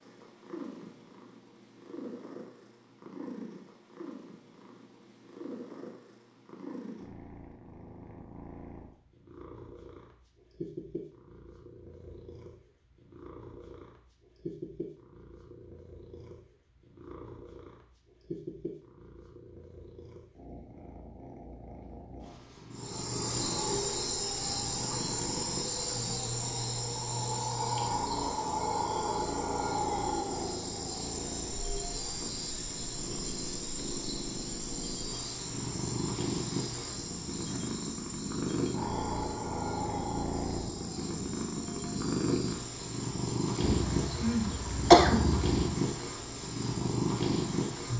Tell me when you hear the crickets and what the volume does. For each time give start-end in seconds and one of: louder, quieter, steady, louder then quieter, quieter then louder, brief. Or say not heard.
22.7-47.9 quieter.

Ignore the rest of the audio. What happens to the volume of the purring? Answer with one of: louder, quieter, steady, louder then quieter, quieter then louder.
louder.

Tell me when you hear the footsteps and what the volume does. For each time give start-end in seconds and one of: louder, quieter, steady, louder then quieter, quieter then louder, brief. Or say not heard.
not heard.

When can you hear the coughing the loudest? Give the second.
45 s.